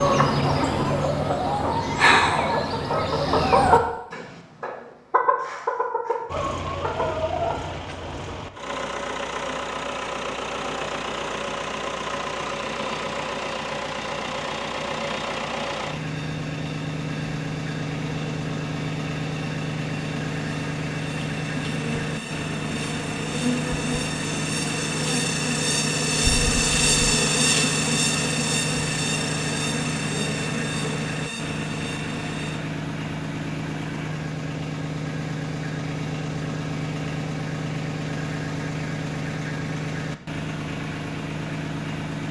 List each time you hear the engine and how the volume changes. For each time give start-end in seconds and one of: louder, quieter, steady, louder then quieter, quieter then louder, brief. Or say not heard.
6.2-42.2 steady.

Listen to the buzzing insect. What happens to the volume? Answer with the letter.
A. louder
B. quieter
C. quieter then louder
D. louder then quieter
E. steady
D.